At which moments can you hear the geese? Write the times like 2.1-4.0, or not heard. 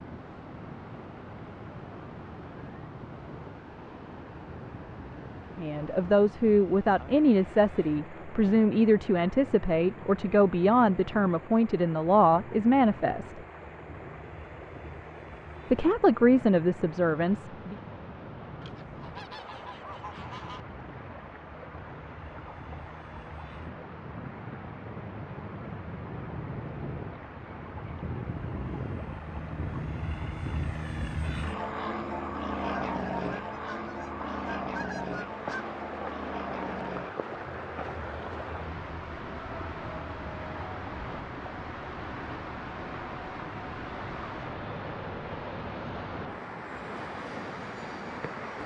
18.6-20.6, 32.6-35.6.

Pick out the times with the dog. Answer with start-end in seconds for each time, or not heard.
not heard.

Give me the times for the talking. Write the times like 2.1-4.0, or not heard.
5.5-13.3, 15.7-17.8.